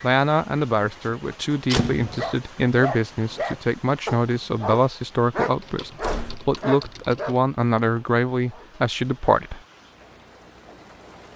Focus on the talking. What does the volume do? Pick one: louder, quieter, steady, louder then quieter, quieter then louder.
steady.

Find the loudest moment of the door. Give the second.
2 s.